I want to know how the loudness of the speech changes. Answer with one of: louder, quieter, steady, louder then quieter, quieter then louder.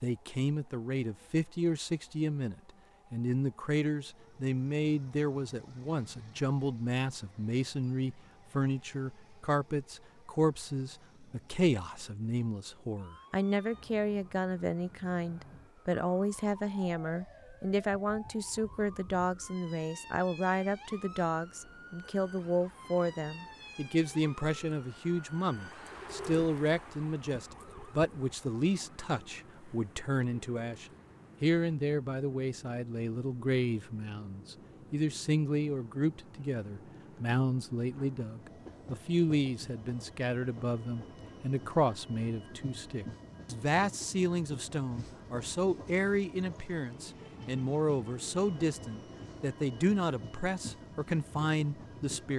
steady.